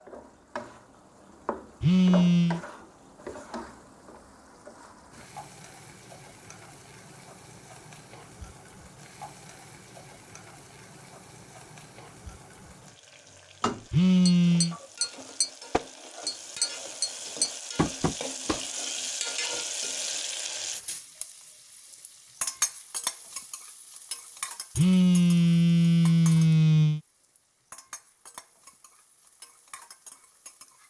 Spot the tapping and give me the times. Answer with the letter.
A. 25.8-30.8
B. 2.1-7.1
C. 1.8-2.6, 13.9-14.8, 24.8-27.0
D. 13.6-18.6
D.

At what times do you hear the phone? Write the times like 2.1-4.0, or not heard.
1.8-2.6, 13.9-14.8, 24.8-27.0.